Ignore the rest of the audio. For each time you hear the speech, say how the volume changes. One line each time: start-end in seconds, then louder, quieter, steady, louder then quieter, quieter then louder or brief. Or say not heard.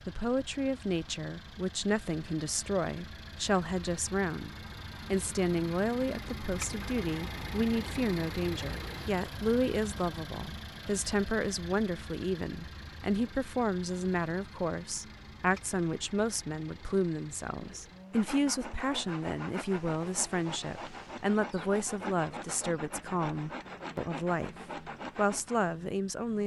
0.1-24.6 steady
25.1-26.4 brief.